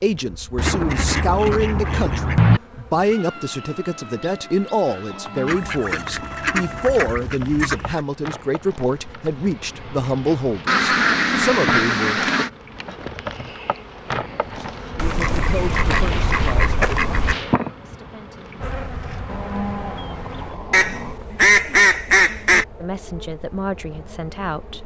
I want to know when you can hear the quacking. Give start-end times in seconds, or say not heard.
0.6-2.6, 5.5-8.0, 10.7-12.5, 14.9-17.4, 20.7-22.6.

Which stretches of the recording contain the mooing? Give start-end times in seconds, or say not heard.
5.1-7.0, 19.2-21.2.